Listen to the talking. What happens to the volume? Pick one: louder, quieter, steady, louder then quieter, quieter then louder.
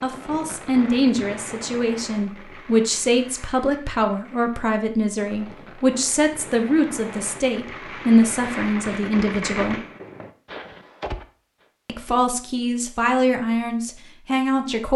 steady.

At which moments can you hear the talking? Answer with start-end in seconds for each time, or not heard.
0.0-9.8, 11.8-14.9.